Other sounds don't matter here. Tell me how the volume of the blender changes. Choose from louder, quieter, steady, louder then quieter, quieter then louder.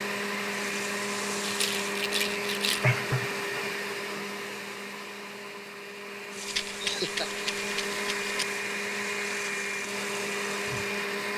quieter then louder.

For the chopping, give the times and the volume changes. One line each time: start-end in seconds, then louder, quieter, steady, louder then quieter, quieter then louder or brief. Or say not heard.
not heard.